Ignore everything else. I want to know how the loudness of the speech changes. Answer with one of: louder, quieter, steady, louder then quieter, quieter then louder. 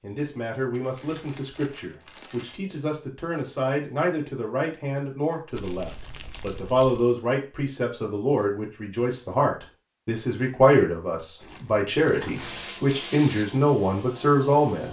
louder.